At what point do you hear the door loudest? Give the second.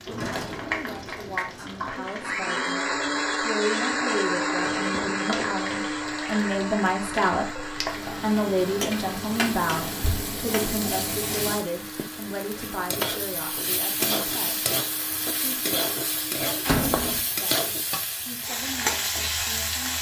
17 s.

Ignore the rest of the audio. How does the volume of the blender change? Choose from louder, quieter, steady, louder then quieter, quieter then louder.
quieter.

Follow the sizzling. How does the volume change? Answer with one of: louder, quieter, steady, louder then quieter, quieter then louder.
louder.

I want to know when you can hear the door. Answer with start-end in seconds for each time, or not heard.
0.1-2.4, 9.8-10.3, 16.6-17.2.